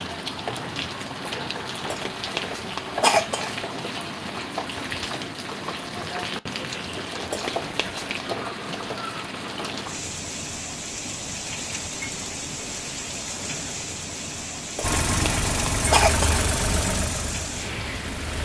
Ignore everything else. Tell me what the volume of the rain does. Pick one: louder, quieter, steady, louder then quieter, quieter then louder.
steady.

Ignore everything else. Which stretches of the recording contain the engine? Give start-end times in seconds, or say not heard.
14.8-18.3.